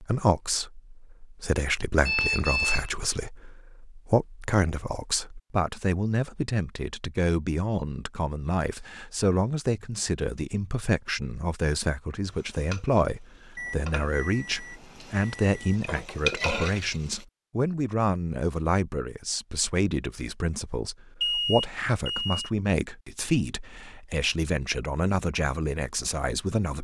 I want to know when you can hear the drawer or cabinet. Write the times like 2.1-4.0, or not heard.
not heard.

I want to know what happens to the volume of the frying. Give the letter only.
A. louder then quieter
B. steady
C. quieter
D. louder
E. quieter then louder
E.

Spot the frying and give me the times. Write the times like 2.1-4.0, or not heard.
12.2-17.2.